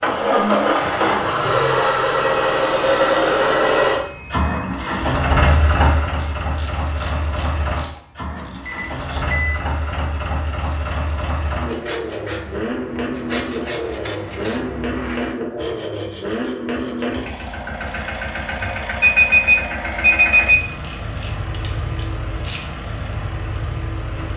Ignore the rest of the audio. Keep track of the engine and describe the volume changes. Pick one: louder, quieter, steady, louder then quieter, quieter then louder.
quieter.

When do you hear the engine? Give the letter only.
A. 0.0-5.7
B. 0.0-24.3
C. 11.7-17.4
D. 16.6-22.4
B.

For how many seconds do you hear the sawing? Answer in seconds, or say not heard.
6 s.